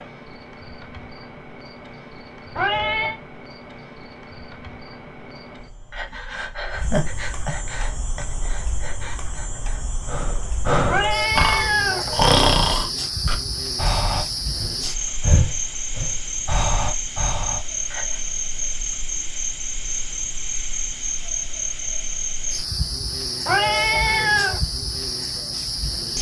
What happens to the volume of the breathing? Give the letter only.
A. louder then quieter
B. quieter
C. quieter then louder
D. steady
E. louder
A.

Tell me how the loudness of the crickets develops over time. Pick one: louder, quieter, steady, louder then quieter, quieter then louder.
louder.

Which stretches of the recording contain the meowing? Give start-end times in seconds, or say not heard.
2.5-3.2, 10.8-12.3, 23.4-24.6.